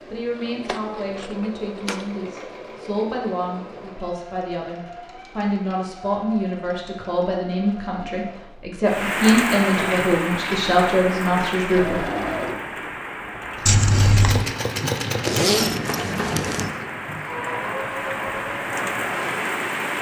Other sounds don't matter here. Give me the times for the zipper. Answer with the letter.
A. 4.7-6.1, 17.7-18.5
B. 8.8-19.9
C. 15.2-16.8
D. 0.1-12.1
C.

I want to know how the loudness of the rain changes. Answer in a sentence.
The loudness of the rain goes down, then up.